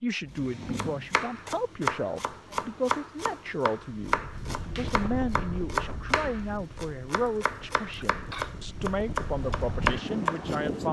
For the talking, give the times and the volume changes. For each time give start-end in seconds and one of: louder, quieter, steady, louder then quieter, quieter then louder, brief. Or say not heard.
0.0-10.8 steady.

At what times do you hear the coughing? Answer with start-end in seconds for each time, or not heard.
8.0-8.6.